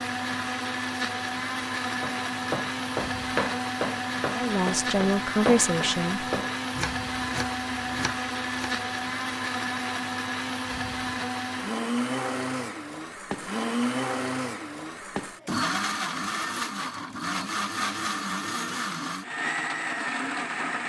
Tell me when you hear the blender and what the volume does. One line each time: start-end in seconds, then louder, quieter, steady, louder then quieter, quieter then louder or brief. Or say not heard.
0.0-20.8 steady.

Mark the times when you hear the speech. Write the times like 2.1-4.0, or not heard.
4.3-6.3.